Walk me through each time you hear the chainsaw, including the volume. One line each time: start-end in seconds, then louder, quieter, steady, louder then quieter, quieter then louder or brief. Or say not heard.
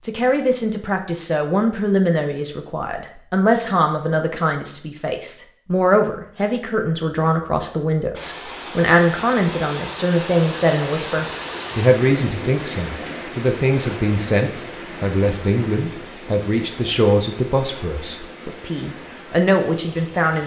not heard.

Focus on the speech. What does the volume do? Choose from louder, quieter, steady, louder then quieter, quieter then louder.
steady.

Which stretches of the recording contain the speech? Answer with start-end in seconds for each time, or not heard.
0.0-20.4.